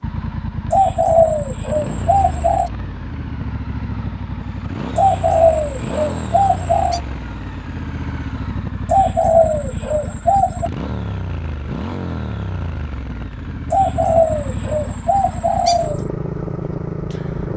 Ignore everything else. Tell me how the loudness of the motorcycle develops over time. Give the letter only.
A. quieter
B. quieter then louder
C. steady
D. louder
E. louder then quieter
C.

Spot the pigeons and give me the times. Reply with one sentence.
You can hear the pigeons from 0.7 to 2.7 s, from 5.0 to 7.0 s, from 8.8 to 10.7 s and from 13.7 to 16.0 s.